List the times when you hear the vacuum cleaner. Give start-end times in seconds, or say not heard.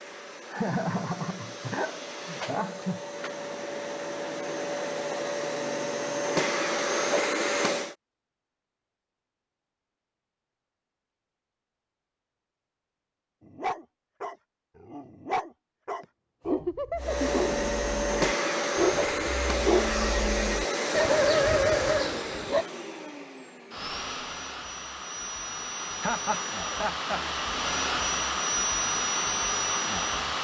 0.0-8.0, 16.9-30.3.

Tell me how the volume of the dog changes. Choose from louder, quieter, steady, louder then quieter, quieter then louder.
louder.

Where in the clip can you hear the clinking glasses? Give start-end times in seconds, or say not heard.
not heard.